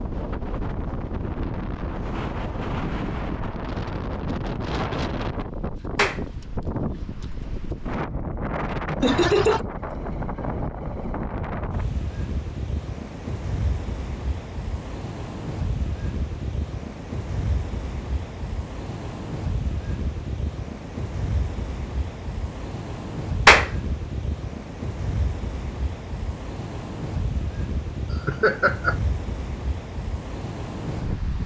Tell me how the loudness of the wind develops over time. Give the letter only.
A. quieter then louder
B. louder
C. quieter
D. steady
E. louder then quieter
D.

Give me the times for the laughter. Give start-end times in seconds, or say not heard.
9.0-9.7, 28.2-28.9.